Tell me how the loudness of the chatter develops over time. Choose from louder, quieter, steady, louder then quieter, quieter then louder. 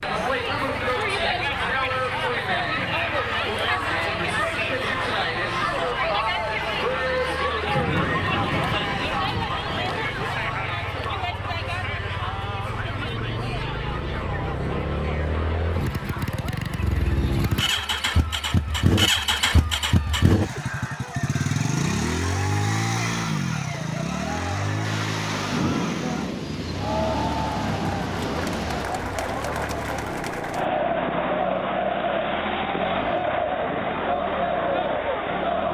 quieter then louder.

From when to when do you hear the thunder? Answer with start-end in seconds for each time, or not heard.
7.7-10.2, 24.8-28.9.